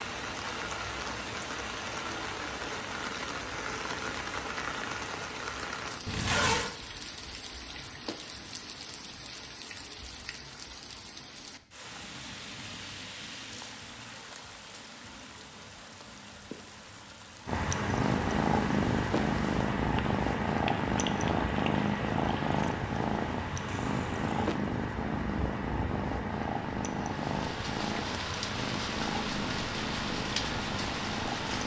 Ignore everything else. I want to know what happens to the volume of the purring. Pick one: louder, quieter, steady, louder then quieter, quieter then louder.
quieter.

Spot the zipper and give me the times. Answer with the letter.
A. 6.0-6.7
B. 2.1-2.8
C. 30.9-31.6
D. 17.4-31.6
A.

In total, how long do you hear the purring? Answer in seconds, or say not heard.
14 s.